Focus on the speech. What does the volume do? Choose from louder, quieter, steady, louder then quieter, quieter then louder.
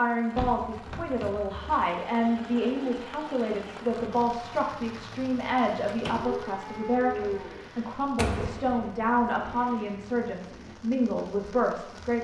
steady.